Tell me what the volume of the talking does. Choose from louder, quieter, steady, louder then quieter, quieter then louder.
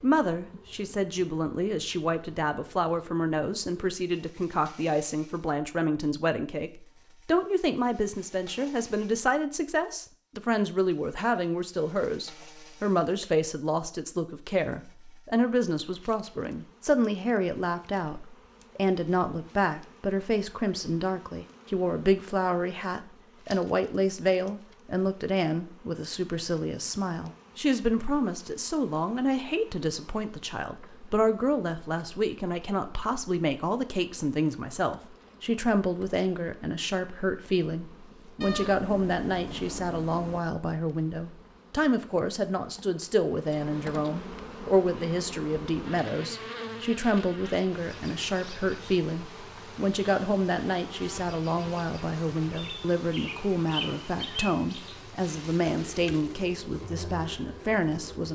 steady.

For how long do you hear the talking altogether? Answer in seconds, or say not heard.
58 s.